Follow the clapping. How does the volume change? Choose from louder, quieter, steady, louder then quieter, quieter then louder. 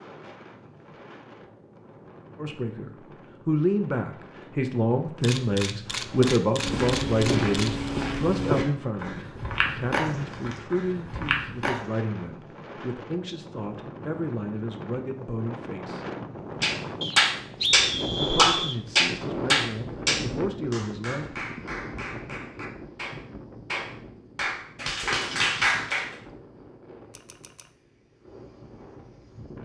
quieter then louder.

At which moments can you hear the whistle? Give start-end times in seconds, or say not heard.
17.0-18.8.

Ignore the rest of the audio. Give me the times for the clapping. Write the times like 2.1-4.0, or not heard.
16.6-26.1.